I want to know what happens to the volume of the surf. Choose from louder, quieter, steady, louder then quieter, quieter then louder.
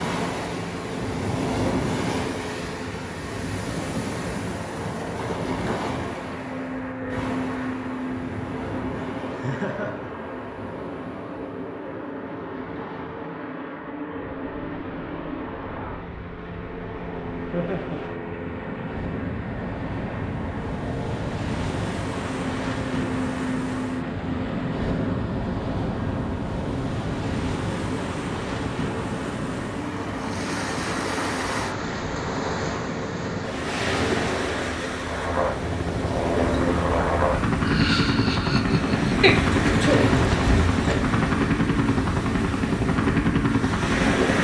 quieter then louder.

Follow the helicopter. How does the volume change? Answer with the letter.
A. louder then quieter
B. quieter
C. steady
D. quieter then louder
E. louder
E.